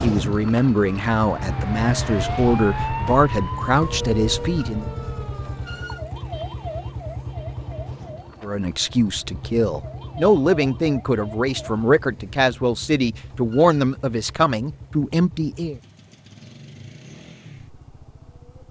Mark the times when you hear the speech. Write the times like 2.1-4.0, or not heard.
0.0-4.8, 8.4-15.8.